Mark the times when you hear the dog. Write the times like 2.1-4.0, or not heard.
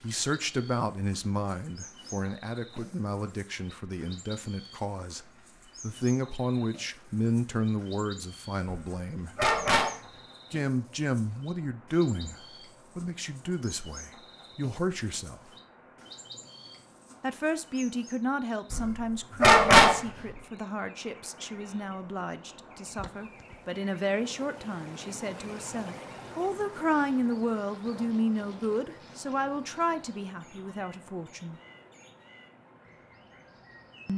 8.7-9.9, 18.7-20.0.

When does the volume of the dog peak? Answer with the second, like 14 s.
20 s.